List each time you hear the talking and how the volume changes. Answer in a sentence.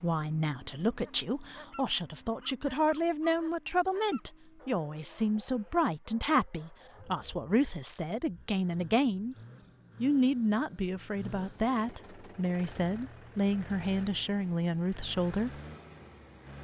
The talking can be heard from 0.0 to 9.3 s, at a steady volume; and from 10.0 to 15.5 s, at a steady volume.